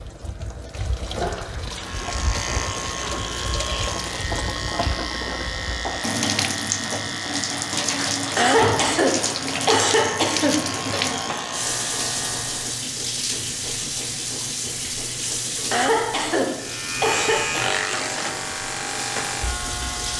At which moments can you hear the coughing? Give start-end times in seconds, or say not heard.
1.2-1.8, 8.3-10.9, 15.7-17.6.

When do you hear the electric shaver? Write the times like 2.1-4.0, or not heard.
1.6-12.8, 16.6-20.1.